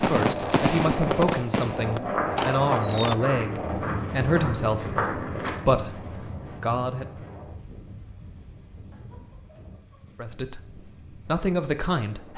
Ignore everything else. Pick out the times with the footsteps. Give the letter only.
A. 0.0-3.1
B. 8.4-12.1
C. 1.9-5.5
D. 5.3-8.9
C.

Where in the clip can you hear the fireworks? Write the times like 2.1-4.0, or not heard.
0.0-3.1.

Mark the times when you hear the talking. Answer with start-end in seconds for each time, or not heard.
0.0-7.2, 10.2-12.3.